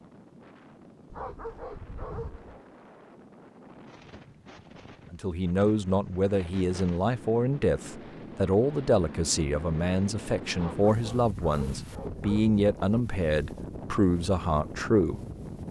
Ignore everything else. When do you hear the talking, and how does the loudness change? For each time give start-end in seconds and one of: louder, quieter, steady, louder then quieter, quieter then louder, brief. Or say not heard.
5.1-15.2 steady.